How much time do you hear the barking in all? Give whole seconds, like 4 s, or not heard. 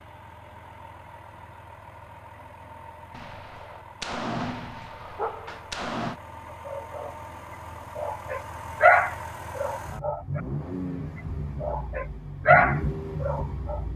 6 s.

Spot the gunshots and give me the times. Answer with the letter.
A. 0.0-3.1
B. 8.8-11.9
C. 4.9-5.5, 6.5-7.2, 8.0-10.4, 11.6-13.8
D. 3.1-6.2
D.